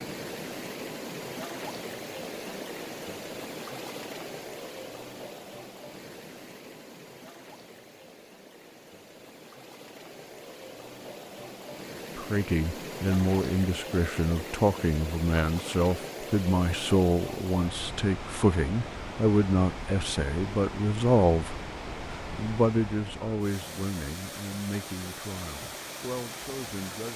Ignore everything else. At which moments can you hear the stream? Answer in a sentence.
You can hear the stream from 0.0 to 27.1 s.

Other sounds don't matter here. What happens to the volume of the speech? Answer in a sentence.
The volume of the speech goes down.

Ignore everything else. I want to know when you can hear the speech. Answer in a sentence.
You can hear the speech from 12.2 to 21.6 s and from 22.3 to 27.1 s.